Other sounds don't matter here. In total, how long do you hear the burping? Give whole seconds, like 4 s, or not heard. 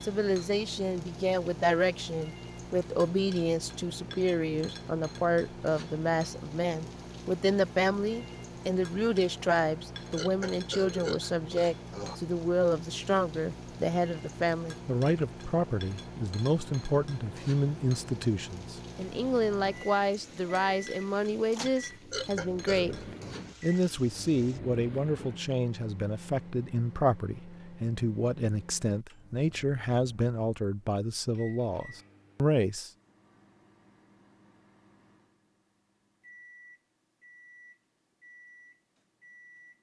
3 s.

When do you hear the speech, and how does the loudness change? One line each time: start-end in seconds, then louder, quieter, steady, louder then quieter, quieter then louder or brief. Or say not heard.
0.0-32.9 steady.